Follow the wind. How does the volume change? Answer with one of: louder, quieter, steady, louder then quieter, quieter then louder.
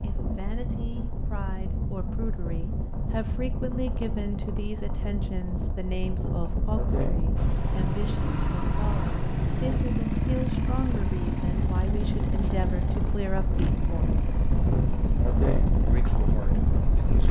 louder.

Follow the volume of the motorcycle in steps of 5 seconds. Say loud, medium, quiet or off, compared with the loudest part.
off, loud, loud, medium.